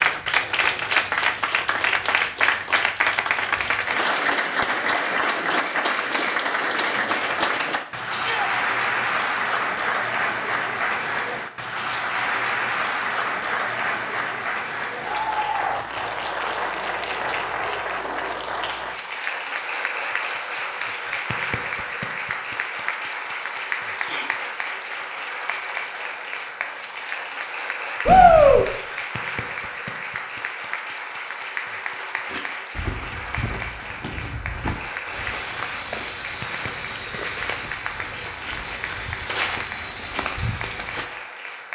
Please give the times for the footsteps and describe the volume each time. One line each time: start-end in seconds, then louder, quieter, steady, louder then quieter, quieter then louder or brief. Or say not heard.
32.2-41.1 louder.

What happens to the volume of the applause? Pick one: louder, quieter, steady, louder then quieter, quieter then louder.
quieter.